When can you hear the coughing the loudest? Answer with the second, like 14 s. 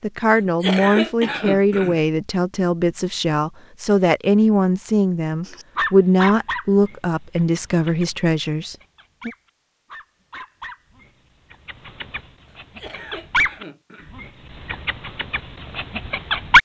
1 s.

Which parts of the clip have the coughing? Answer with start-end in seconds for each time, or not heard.
0.3-2.0, 12.5-14.1.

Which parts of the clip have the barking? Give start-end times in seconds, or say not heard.
5.5-16.6.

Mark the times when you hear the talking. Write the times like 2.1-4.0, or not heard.
0.0-9.3.